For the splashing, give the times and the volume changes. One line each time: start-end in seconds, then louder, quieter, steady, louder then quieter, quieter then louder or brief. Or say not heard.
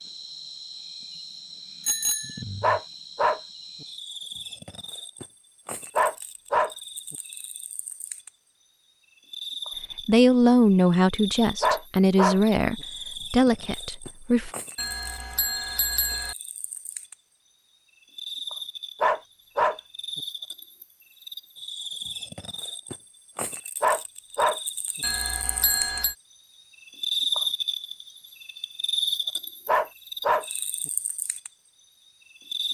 not heard.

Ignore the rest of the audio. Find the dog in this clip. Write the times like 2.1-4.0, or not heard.
2.6-3.9, 6.0-7.2, 11.6-12.4, 19.0-20.2, 23.8-24.6, 29.6-30.9.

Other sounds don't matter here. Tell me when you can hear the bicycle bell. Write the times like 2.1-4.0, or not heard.
1.8-2.5, 14.8-16.4, 25.0-26.1.